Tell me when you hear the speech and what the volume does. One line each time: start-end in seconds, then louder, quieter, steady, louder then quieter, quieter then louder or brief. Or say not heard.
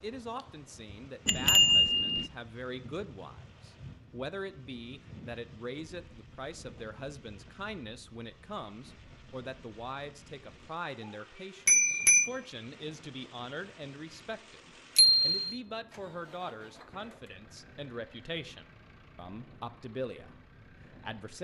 0.0-21.3 steady.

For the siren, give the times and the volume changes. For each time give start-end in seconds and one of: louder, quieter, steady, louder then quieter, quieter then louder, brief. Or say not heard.
not heard.